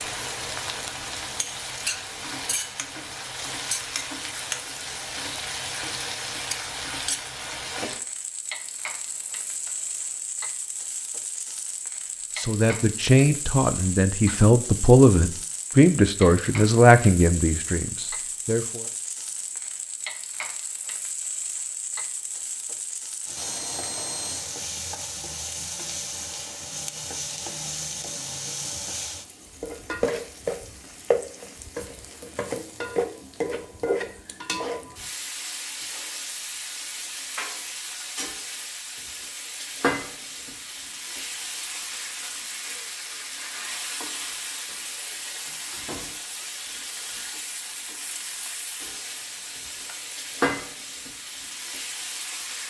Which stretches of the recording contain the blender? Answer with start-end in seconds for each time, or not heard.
not heard.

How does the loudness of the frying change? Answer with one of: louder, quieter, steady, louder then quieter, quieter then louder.
steady.